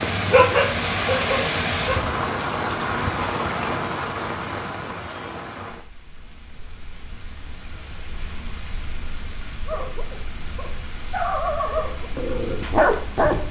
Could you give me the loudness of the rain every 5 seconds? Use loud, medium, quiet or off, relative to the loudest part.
loud, quiet, quiet.